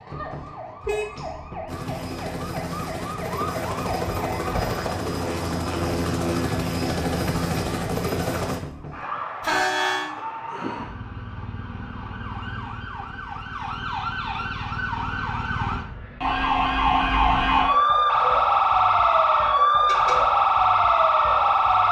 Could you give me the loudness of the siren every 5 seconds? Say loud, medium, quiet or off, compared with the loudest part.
quiet, quiet, quiet, loud, loud.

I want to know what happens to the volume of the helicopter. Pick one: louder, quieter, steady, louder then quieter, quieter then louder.
louder.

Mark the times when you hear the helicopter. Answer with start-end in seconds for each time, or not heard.
1.6-8.6.